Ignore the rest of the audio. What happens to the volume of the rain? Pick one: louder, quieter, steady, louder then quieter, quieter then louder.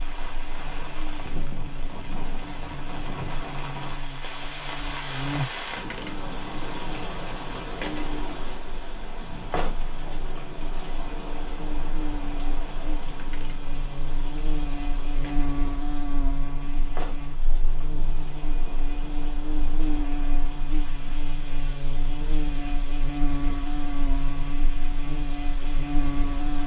quieter.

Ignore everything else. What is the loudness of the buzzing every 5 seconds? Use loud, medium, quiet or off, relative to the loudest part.
medium, loud, medium, loud, loud, loud.